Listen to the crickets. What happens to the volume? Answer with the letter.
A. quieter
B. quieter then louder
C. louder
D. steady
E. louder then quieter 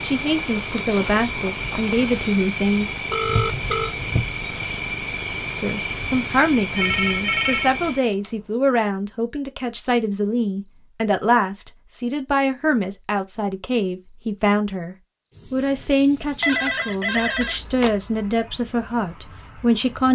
A.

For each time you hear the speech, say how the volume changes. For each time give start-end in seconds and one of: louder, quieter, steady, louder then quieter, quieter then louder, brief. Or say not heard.
0.0-2.9 brief
5.6-20.1 steady.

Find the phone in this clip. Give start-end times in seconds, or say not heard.
3.1-4.0, 6.8-8.3, 16.4-17.9.